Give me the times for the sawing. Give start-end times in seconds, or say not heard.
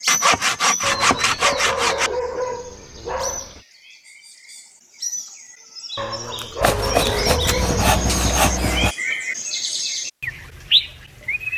0.1-2.1, 6.6-8.9.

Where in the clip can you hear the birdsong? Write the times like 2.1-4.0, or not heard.
0.0-11.5.